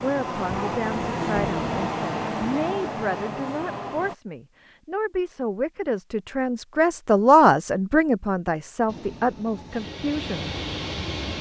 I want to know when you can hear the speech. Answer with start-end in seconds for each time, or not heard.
0.0-10.5.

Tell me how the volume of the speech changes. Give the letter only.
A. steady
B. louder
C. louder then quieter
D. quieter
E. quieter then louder
C.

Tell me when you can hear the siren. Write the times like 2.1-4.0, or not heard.
not heard.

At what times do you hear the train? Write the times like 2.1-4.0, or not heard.
0.0-4.2, 8.8-11.3.